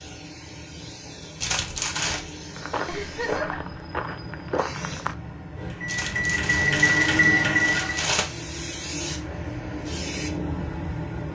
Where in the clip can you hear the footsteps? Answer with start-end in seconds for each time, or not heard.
2.5-5.2.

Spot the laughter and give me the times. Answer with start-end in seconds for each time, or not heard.
2.9-3.8.